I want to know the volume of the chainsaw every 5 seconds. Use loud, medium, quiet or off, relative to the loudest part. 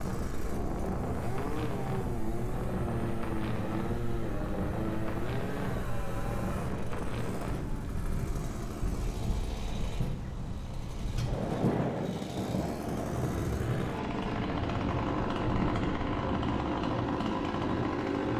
medium, medium, medium, loud.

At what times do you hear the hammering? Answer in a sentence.
The hammering can't be heard in this clip.